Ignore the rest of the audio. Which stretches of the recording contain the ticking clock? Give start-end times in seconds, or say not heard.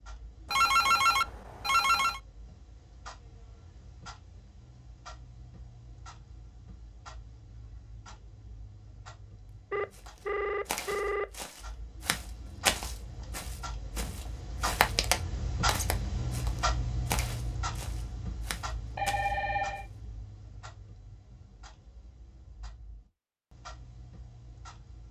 0.0-25.0.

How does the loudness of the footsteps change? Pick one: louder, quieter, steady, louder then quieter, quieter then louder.
louder then quieter.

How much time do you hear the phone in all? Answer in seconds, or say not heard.
4 s.